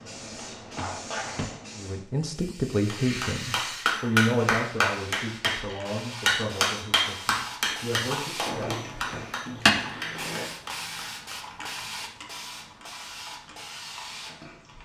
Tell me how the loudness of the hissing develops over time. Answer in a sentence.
The volume of the hissing goes up, then down.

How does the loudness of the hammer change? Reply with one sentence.
The volume of the hammer goes down.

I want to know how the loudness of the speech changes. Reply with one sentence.
The loudness of the speech goes down.